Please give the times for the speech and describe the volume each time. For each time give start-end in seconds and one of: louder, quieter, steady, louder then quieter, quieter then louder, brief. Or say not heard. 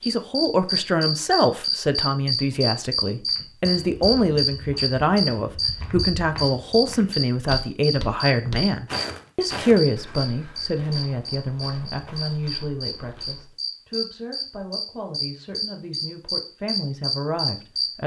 0.1-18.0 quieter.